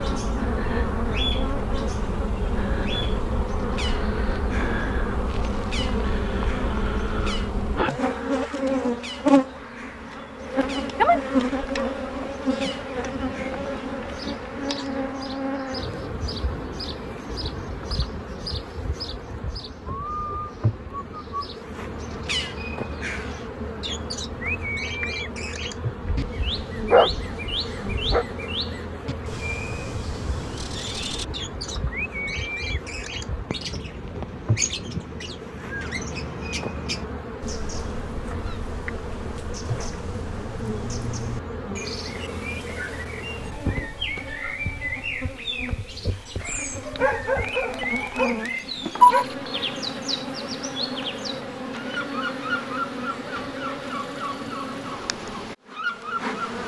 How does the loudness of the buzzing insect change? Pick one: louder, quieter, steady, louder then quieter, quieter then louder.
quieter.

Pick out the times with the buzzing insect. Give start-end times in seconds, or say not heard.
0.0-56.6.